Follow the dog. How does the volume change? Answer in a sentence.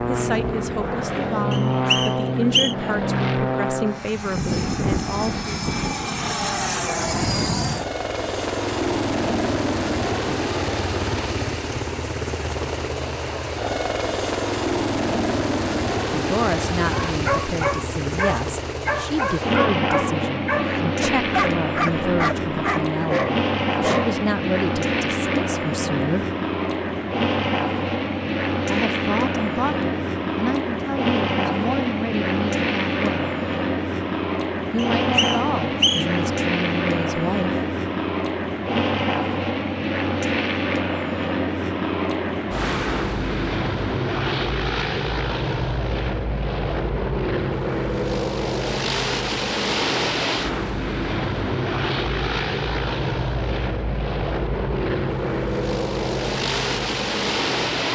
The loudness of the dog stays about the same.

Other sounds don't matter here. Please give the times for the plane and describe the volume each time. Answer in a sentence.
The plane can be heard from 0.0 to 57.9 s, at a steady volume.